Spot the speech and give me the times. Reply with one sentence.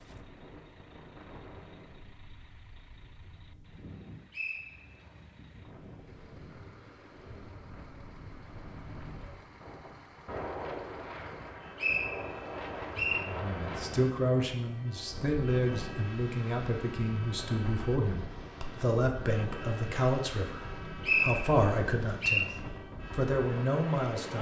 The speech can be heard from 13.1 to 22.5 s and from 23.1 to 24.3 s.